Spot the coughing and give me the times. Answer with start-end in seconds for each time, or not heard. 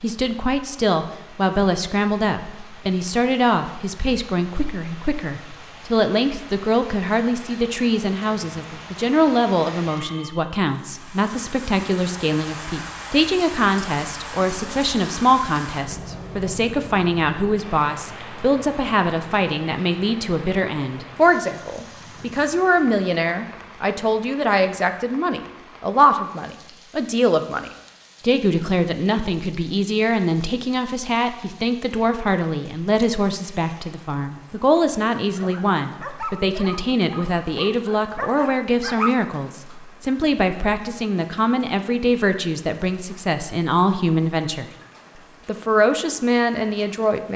not heard.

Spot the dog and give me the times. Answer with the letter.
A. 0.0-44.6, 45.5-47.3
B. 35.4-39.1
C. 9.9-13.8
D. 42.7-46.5
B.